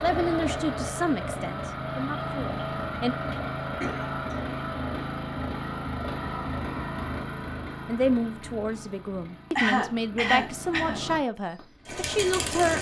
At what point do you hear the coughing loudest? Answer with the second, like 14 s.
10 s.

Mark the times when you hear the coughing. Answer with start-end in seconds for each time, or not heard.
3.8-4.5, 9.6-11.0.